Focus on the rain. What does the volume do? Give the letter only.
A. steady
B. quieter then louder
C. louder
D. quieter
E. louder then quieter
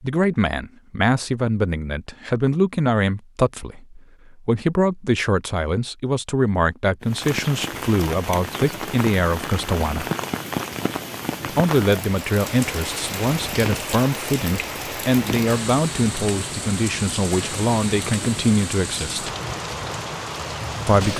A.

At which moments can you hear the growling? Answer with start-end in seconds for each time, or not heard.
not heard.